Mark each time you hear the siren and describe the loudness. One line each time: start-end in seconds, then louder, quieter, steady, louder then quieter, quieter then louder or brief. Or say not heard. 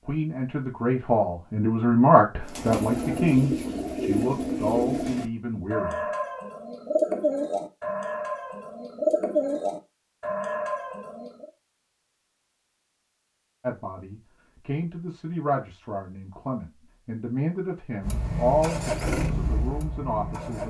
not heard.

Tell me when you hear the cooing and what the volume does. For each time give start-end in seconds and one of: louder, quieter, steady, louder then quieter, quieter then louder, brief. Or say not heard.
2.5-11.5 steady.